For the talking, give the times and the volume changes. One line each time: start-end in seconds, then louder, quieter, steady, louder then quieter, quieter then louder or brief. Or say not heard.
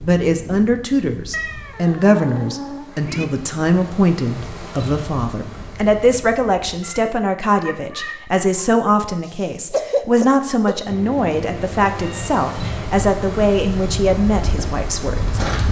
0.0-15.4 steady.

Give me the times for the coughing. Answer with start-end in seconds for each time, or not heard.
9.2-10.8.